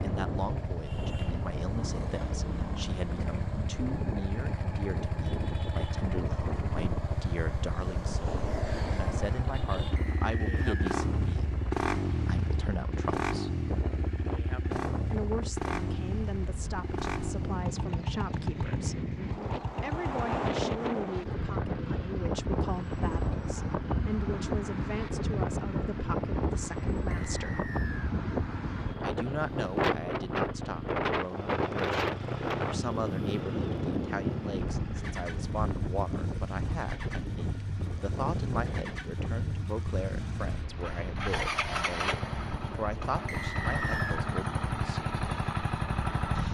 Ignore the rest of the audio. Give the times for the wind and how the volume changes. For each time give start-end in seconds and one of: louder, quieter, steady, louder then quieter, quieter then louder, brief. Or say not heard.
0.0-46.4 louder then quieter.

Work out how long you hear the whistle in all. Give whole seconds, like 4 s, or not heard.
3 s.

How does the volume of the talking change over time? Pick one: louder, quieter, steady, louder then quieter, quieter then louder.
steady.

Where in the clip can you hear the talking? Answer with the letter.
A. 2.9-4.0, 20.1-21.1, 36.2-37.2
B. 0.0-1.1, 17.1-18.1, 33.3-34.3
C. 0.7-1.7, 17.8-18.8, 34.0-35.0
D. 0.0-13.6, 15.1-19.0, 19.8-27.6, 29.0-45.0
D.